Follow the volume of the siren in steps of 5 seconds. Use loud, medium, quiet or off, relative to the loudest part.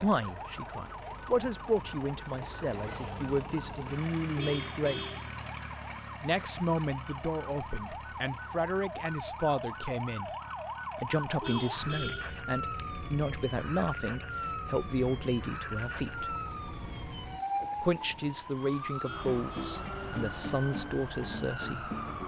medium, medium, loud, loud, loud.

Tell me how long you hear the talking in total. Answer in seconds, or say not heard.
19 s.